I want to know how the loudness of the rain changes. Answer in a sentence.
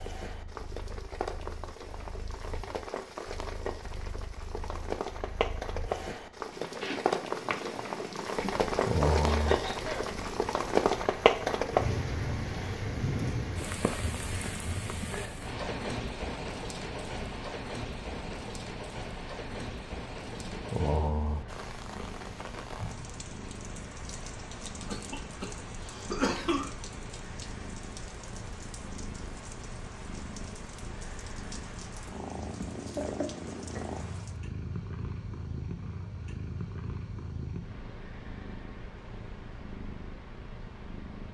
The volume of the rain goes up, then down.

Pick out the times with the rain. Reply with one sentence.
The rain can be heard from 0.0 to 34.4 s.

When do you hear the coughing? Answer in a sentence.
The coughing can be heard from 9.2 to 10.1 s, from 24.9 to 25.5 s and from 26.1 to 26.7 s.